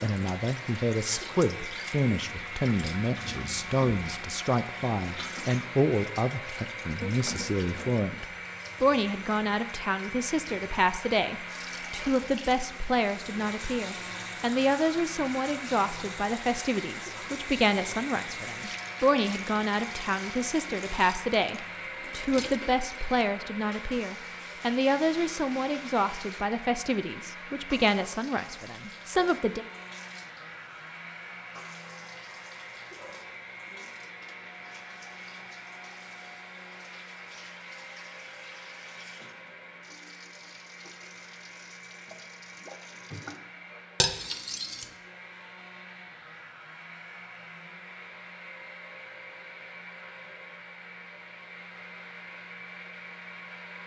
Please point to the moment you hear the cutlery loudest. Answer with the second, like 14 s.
44 s.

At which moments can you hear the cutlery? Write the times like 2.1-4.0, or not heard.
22.4-23.2, 44.0-44.9.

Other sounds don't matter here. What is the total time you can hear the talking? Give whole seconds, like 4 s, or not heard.
30 s.